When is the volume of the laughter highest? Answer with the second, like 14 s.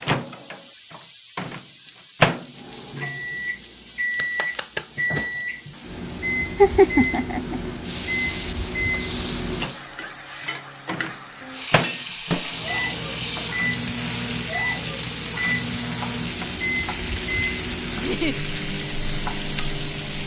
7 s.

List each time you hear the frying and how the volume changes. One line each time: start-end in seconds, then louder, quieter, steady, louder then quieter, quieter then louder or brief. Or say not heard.
0.0-20.2 louder.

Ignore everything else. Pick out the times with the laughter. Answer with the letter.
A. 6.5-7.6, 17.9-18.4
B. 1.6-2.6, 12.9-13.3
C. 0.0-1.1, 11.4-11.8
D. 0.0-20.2
A.